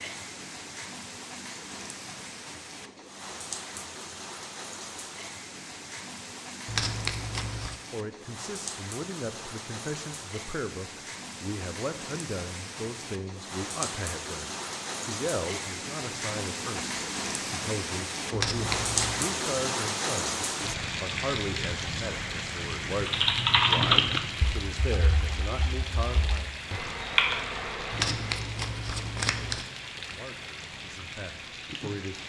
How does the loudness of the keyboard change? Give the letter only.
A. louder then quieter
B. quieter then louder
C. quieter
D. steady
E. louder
B.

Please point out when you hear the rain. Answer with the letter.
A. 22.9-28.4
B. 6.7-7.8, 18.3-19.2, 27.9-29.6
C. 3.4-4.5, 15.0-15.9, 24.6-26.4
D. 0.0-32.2
D.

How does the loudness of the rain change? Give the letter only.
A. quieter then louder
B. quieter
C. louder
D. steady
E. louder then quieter
E.